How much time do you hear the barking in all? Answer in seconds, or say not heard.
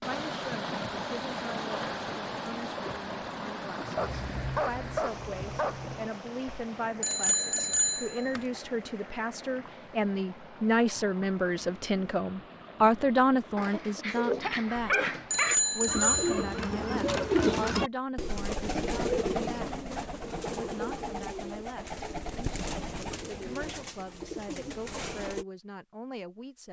4 s.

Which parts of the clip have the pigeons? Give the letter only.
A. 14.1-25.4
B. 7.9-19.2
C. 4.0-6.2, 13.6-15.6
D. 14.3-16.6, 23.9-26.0
A.